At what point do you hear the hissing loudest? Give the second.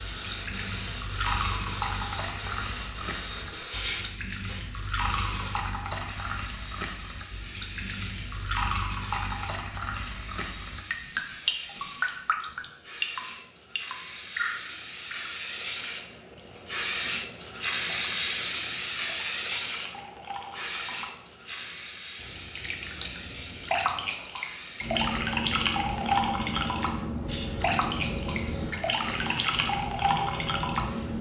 18 s.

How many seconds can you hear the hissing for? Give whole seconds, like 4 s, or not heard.
31 s.